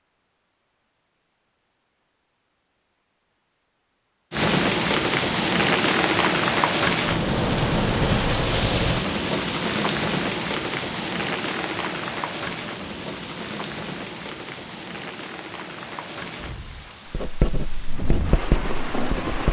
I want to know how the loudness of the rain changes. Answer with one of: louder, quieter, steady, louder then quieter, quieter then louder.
quieter.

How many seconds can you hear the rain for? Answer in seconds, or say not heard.
15 s.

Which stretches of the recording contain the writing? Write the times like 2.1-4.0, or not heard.
17.1-19.4.